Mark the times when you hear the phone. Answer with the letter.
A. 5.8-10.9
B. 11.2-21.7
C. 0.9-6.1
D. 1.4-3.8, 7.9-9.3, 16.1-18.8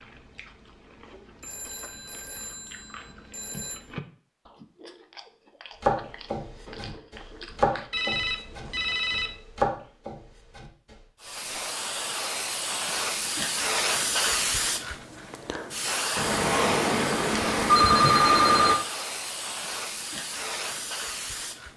D.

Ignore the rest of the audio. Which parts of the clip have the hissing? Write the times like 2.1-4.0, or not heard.
11.2-21.7.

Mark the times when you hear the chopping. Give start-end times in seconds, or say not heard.
5.8-10.9.